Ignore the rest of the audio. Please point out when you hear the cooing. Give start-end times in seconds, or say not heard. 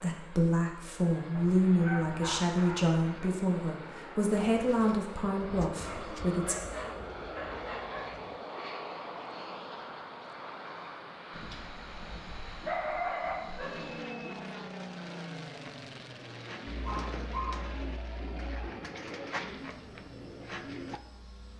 4.2-8.4, 15.6-21.0.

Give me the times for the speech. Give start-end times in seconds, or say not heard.
0.0-6.5.